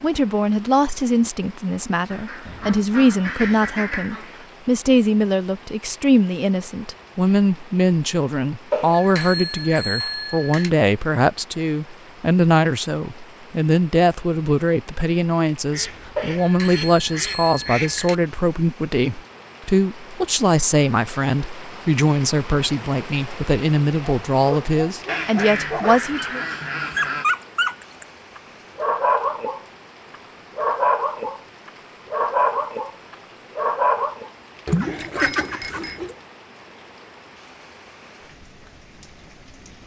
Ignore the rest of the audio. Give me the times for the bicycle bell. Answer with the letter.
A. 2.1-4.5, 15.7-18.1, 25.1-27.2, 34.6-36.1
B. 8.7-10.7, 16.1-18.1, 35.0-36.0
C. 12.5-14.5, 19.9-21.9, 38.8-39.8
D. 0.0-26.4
B.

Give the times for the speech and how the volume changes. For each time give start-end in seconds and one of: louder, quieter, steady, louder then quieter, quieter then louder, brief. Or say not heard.
0.0-26.4 steady.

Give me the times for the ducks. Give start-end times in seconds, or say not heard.
2.1-4.5, 15.7-18.1, 25.1-27.2, 34.6-36.1.